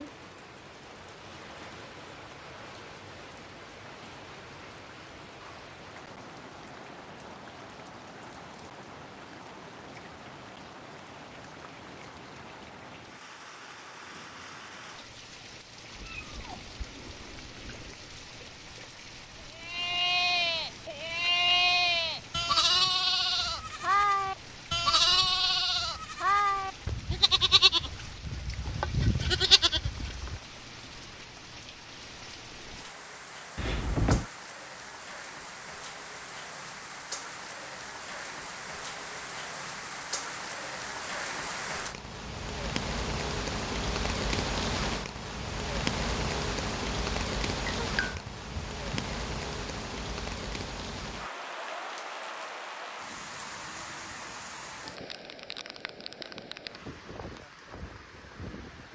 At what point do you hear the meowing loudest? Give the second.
34 s.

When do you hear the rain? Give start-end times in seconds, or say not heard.
0.0-58.8.